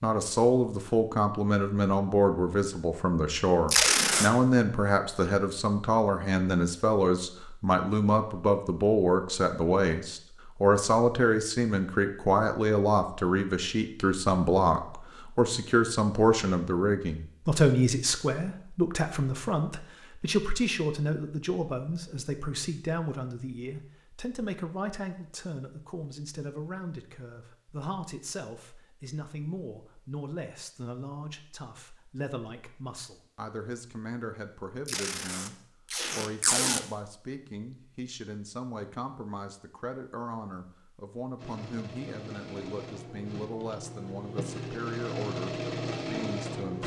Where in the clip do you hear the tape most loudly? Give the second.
4 s.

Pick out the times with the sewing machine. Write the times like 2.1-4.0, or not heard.
41.4-46.8.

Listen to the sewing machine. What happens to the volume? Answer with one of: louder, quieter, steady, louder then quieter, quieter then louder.
louder.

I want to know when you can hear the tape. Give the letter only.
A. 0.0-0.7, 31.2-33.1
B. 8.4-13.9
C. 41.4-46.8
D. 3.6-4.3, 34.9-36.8
D.